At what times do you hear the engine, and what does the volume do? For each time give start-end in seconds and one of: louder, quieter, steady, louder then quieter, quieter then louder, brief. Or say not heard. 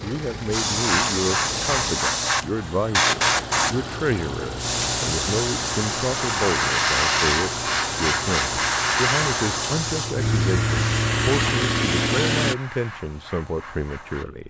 0.0-12.6 louder.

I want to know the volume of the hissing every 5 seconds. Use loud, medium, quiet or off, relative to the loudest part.
loud, loud, quiet.